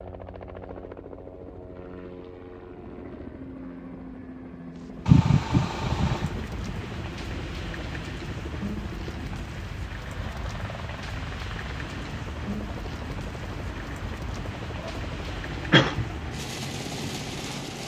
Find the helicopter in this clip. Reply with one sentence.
You can hear the helicopter from 0.0 to 17.8 s.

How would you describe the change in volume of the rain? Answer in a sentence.
The volume of the rain stays about the same.